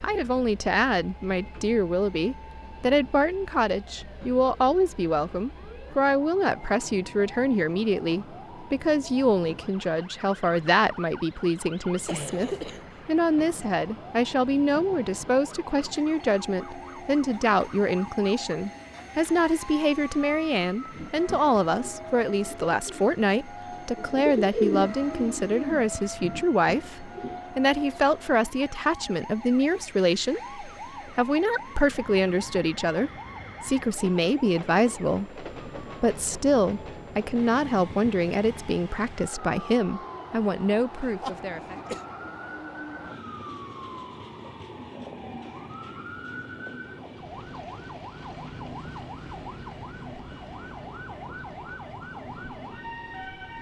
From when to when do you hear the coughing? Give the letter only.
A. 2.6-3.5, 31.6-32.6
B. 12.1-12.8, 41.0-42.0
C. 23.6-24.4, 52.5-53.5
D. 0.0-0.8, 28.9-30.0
B.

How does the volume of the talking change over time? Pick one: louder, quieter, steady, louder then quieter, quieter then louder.
steady.